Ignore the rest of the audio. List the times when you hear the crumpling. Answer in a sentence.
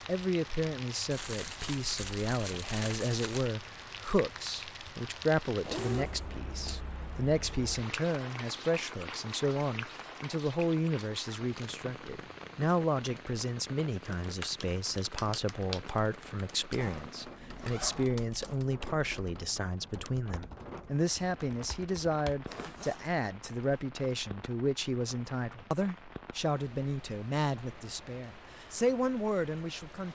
You can hear the crumpling from 1.1 to 3.5 s.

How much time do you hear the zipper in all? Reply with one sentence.
The zipper can be heard for 4 seconds in total.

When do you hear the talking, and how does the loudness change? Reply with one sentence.
You can hear the talking from 0.1 to 30.1 s, at a steady volume.